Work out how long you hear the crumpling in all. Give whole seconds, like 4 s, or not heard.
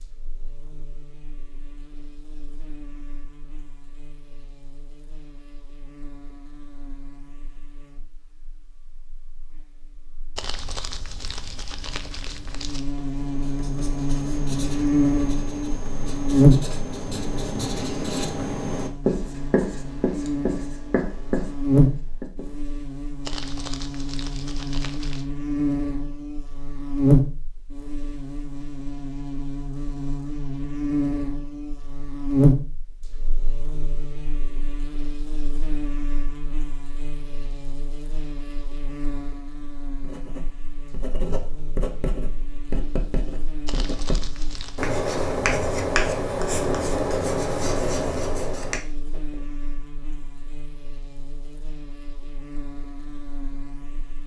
6 s.